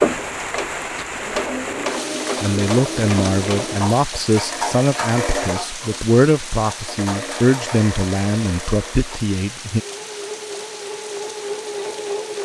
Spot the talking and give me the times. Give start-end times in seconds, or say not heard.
2.4-9.8.